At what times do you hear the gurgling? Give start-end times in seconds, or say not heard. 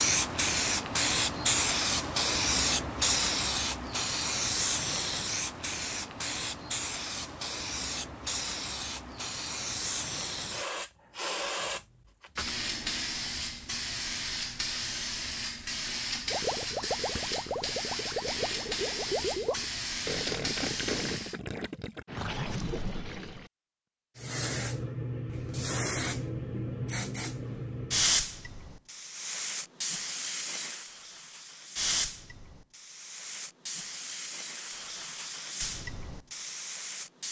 16.3-23.5.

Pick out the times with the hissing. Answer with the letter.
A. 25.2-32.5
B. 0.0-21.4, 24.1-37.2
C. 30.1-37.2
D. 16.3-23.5
B.